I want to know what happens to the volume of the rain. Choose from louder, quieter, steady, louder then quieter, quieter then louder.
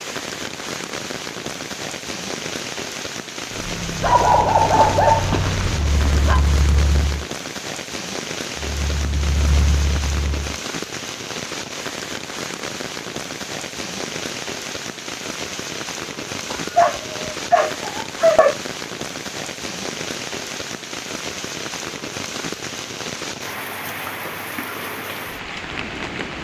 steady.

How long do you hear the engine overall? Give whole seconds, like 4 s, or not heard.
6 s.